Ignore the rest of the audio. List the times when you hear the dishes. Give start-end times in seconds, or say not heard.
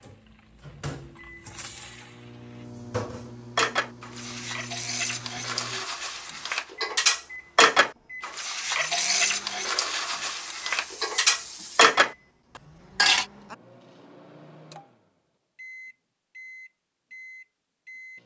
3.5-13.2.